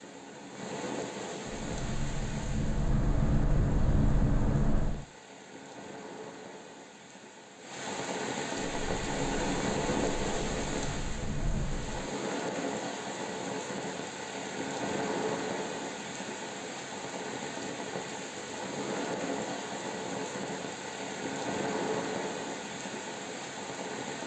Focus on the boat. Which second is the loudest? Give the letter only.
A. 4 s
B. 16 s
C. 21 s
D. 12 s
A.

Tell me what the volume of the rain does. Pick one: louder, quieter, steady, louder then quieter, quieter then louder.
louder.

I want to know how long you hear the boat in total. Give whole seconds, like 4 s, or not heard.
7 s.